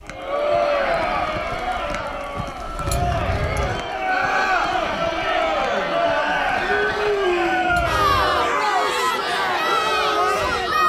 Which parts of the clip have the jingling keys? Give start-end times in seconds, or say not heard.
2.8-3.8, 7.7-8.3.